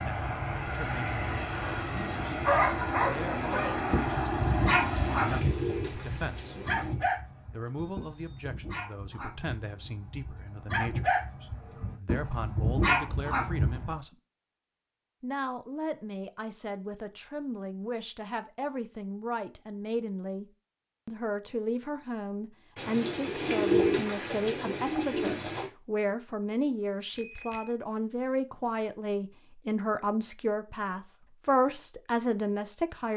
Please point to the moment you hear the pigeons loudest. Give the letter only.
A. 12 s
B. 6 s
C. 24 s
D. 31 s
C.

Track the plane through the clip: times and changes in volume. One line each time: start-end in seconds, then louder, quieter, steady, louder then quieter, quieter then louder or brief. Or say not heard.
0.0-5.4 steady.